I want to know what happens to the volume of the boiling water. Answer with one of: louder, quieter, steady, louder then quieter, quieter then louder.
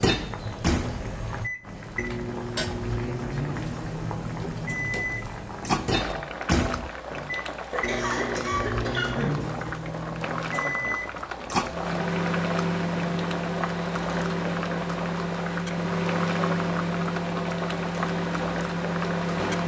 steady.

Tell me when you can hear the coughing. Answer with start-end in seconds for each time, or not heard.
7.7-9.4.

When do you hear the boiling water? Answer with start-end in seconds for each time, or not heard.
0.0-19.6.